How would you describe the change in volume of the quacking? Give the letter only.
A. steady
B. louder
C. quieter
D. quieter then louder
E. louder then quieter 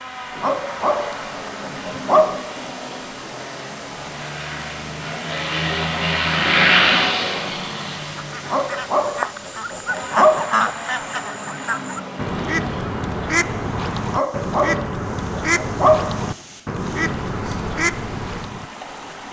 A.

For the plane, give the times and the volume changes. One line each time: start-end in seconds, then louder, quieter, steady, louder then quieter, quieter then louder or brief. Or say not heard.
0.0-13.9 louder then quieter.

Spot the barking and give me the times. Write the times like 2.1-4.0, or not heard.
0.3-2.4, 8.4-10.6, 14.1-16.1.